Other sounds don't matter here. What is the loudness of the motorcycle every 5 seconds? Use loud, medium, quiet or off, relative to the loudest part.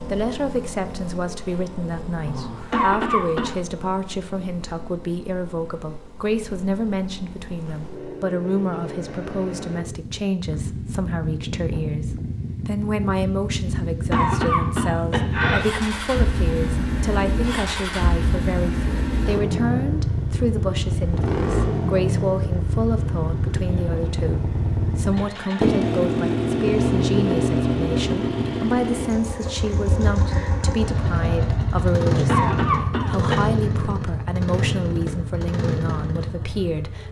quiet, quiet, medium, loud, loud, loud, loud, medium.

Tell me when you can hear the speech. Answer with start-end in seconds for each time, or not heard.
0.0-37.0.